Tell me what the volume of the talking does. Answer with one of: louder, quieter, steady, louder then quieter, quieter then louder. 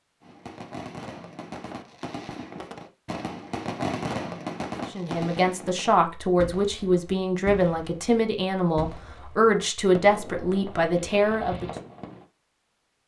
steady.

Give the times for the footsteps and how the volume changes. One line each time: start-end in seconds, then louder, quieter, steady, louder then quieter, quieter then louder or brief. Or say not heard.
not heard.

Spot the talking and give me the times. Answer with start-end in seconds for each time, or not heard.
4.8-11.7.